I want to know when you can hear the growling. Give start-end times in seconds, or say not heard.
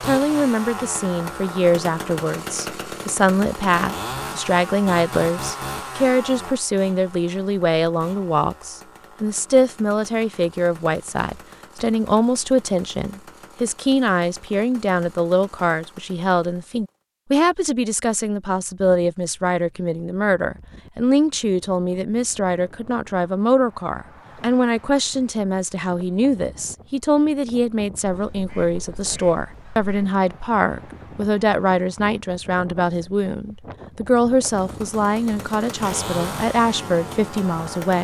not heard.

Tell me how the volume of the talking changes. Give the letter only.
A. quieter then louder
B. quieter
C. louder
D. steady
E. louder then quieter
D.